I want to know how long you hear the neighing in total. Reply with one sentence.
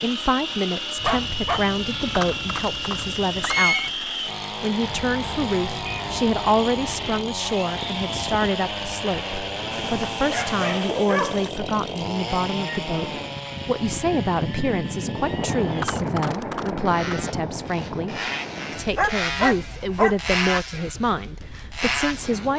You can hear the neighing for 3 seconds altogether.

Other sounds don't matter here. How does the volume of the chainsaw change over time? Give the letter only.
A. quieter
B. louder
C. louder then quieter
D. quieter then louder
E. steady
D.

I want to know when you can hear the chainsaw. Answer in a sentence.
The chainsaw can be heard from 0.0 to 22.5 s.